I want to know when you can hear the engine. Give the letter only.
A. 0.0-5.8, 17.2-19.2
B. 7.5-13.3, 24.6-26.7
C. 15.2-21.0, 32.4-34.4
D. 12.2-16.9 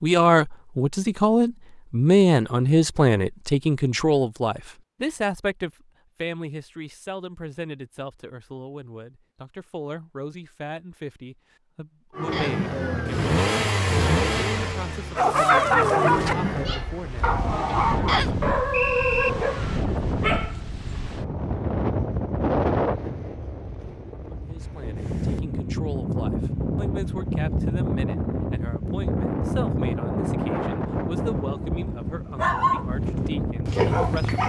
D.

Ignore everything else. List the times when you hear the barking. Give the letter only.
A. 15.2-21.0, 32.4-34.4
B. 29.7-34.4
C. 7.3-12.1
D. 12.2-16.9
A.